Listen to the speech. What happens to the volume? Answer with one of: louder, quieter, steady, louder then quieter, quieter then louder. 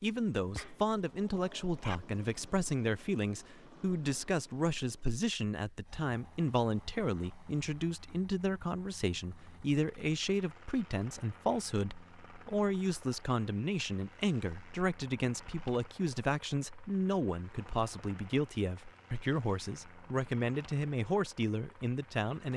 steady.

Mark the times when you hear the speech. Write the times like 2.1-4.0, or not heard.
0.0-22.5.